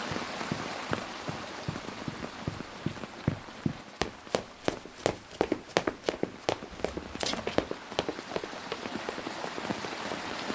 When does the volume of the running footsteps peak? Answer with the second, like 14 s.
6 s.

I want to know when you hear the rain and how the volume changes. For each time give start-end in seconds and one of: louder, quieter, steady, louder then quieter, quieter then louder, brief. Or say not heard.
0.0-10.5 quieter then louder.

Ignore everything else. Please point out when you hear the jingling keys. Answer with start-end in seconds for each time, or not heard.
6.7-7.7.